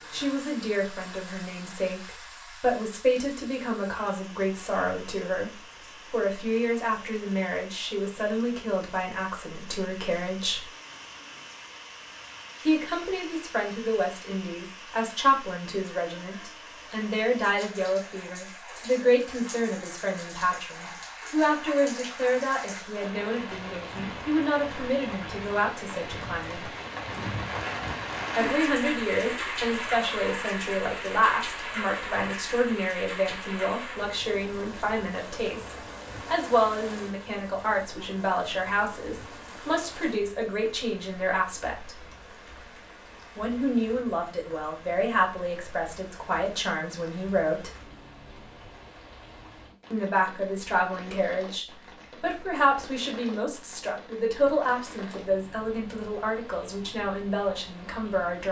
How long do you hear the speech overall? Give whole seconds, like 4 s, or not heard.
51 s.